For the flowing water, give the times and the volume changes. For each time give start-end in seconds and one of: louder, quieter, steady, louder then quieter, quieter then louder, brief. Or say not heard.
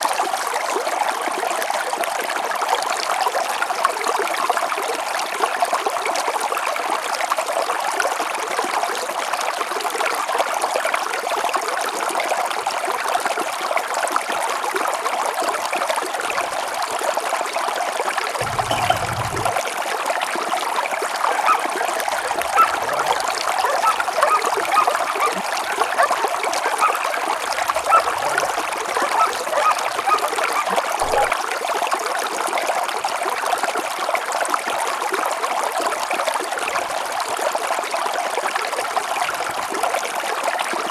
0.0-40.8 steady.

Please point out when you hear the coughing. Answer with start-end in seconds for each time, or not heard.
18.4-19.6.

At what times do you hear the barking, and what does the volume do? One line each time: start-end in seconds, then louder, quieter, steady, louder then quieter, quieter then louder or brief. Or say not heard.
21.3-31.4 steady.